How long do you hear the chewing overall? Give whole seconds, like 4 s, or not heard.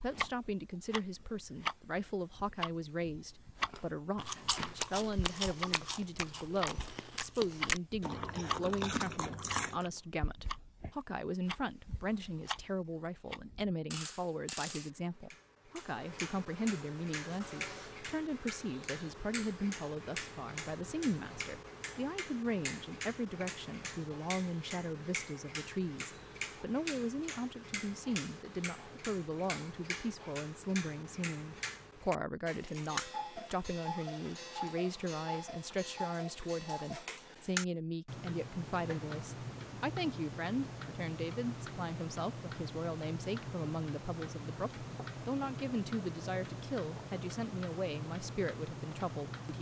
6 s.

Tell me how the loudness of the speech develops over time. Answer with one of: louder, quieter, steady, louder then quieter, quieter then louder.
steady.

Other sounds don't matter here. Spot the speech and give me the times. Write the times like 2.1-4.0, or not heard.
0.0-49.5.